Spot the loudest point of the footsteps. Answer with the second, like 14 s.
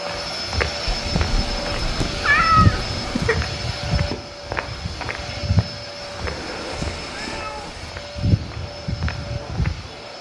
3 s.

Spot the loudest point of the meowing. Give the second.
2 s.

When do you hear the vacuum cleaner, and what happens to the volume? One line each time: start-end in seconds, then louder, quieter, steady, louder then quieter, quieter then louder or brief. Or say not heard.
0.0-10.1 quieter.